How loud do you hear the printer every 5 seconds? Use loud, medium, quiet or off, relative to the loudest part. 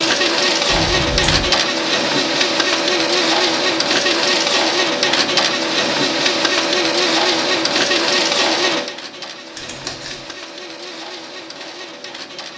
loud, loud, quiet.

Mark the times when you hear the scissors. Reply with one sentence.
The scissors can be heard from 0.7 to 1.5 s and from 9.6 to 10.3 s.